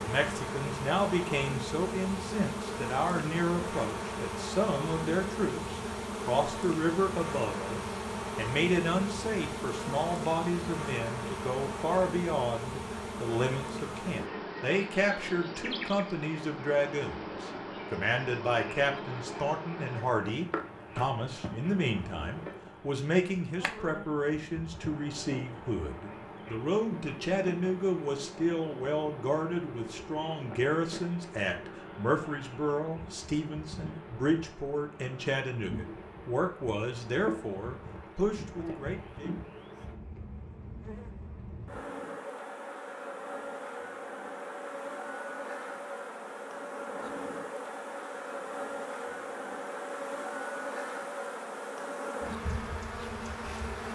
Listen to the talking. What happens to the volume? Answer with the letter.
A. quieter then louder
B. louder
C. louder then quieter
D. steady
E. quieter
D.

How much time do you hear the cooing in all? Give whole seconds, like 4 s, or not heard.
not heard.